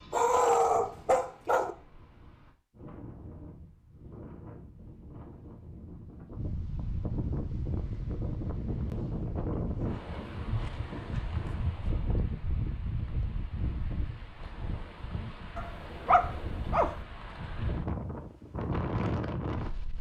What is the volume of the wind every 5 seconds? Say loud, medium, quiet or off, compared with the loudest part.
quiet, loud, loud, loud.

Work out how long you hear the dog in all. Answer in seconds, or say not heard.
3 s.